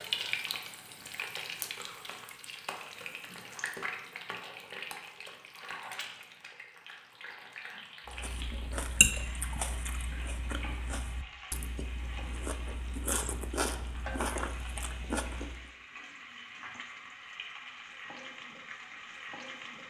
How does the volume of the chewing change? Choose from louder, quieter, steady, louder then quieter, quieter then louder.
quieter then louder.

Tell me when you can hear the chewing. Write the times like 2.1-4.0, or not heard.
8.1-15.7.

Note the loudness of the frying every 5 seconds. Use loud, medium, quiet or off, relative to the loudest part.
loud, medium, medium, medium.